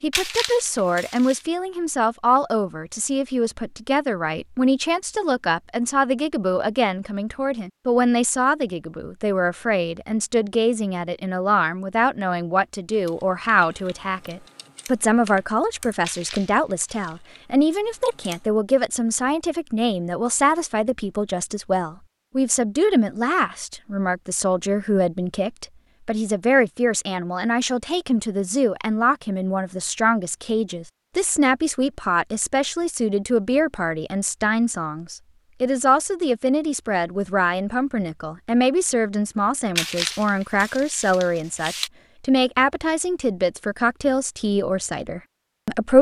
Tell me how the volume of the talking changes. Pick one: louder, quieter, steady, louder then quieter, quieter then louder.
steady.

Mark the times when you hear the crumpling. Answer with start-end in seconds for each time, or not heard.
0.1-1.4, 16.0-17.1, 39.8-41.9.